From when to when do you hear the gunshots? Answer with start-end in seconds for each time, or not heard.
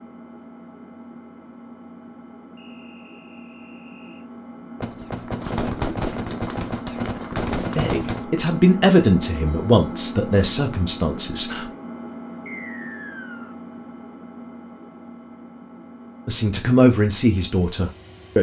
4.8-8.2.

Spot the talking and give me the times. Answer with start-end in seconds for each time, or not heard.
7.8-11.7, 16.2-18.3.